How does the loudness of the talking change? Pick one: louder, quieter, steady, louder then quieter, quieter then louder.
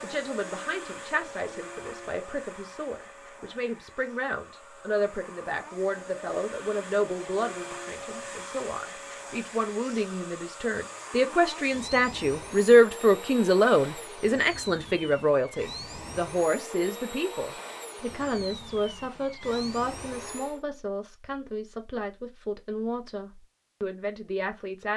louder then quieter.